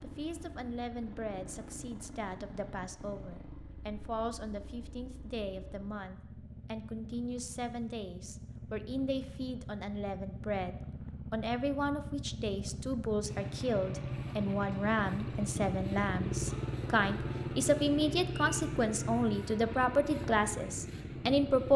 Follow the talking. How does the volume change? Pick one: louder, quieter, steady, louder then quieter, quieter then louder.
louder.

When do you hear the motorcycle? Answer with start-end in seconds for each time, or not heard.
0.0-21.7.